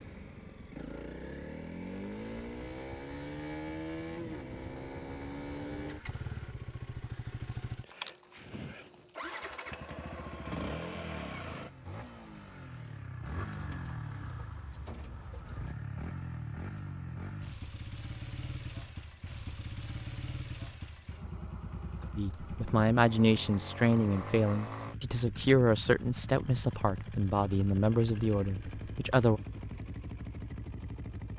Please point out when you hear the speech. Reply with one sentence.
You can hear the speech from 22.1 to 29.4 s.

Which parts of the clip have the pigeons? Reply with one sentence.
The pigeons can be heard from 13.3 to 15.8 s.